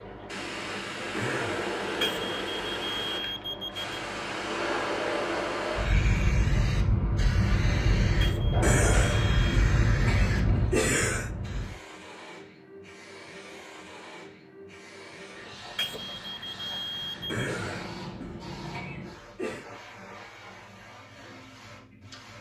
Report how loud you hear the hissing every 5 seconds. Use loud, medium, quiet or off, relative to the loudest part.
medium, loud, medium, quiet, quiet.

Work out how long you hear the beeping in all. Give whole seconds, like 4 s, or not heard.
5 s.